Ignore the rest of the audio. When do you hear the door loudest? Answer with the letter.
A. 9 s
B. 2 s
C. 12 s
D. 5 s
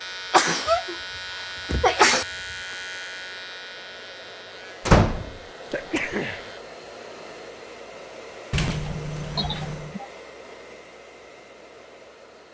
D.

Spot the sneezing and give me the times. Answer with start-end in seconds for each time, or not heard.
0.3-0.9, 1.8-2.2, 5.7-6.5, 9.3-10.1.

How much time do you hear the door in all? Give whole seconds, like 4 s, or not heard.
4 s.